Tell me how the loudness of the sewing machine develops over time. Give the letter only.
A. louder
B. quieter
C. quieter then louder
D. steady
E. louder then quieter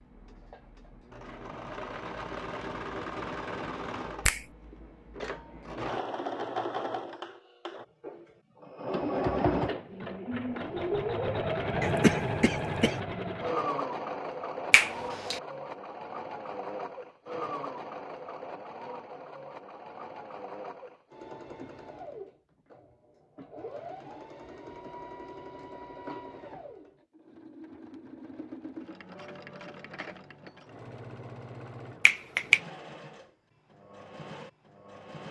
E.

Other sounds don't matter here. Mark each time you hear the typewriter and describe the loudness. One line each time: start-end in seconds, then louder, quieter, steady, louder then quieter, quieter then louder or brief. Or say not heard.
not heard.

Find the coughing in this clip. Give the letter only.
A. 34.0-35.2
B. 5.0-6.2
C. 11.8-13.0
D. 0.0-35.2
C.